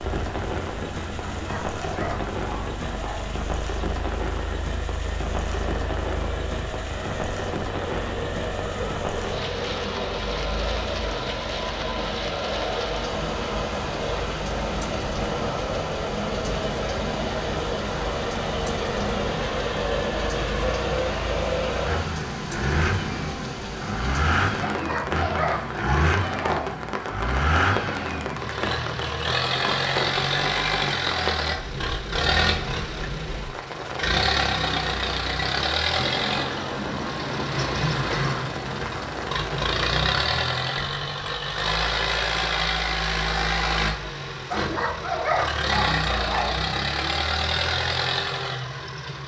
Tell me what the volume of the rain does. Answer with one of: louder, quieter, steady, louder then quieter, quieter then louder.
steady.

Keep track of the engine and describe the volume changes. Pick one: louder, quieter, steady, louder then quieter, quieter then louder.
louder.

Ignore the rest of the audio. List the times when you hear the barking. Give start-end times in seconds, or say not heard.
1.2-3.2, 24.6-26.6, 44.5-46.5.